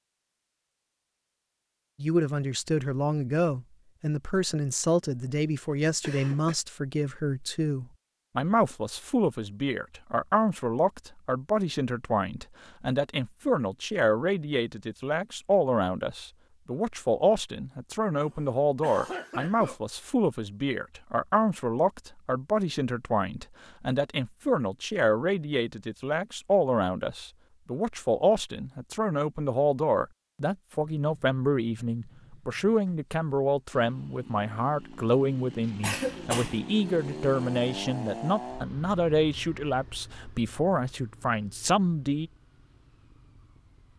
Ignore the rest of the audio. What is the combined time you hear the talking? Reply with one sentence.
You can hear the talking for 40 seconds altogether.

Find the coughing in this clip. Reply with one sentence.
The coughing can be heard from 6.0 to 6.5 s, from 18.2 to 19.8 s and from 35.8 to 36.6 s.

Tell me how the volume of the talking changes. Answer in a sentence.
The loudness of the talking stays about the same.